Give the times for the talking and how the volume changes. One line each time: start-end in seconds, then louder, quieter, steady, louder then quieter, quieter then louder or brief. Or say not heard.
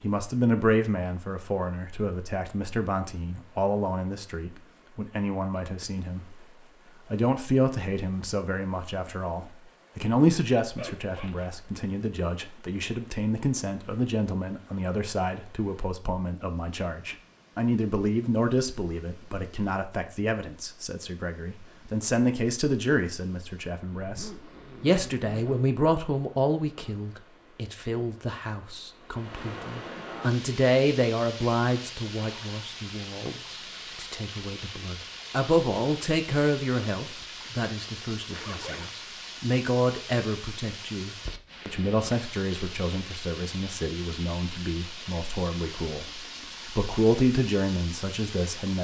0.0-6.4 quieter
7.0-48.7 steady.